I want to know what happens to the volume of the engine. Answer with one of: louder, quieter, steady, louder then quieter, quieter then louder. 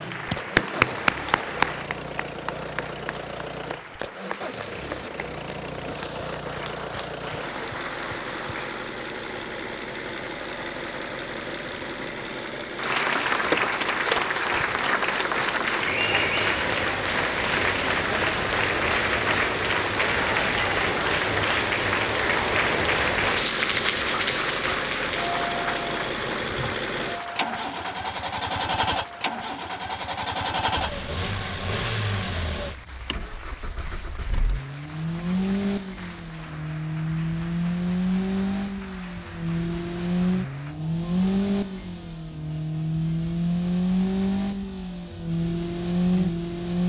louder.